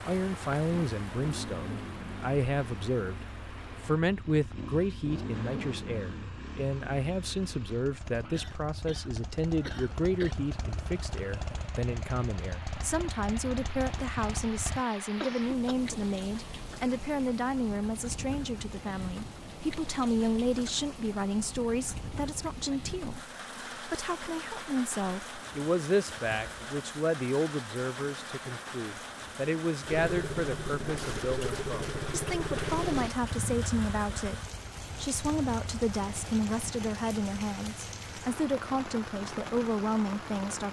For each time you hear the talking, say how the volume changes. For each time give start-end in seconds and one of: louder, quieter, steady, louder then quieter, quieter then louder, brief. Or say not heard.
0.1-40.6 steady.